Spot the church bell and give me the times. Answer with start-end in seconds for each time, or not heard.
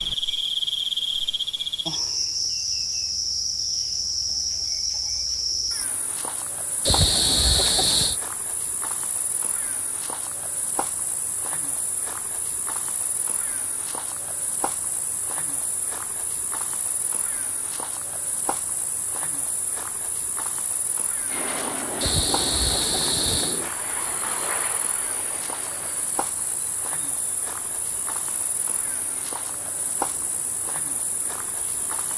not heard.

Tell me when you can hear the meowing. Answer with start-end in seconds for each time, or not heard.
6.8-8.2, 22.0-23.6.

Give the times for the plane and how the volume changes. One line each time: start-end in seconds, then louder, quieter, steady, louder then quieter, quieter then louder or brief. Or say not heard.
21.2-32.1 quieter.